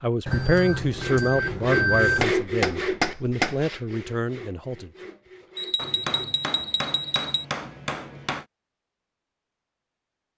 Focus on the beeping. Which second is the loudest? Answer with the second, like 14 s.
2 s.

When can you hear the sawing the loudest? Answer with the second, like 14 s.
2 s.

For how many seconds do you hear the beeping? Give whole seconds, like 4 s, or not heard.
4 s.